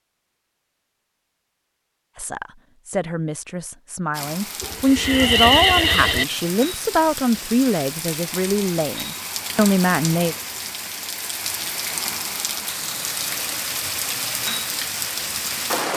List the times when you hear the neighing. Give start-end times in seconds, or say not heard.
4.6-6.2.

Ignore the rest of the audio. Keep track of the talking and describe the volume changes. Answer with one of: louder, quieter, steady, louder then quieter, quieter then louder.
louder.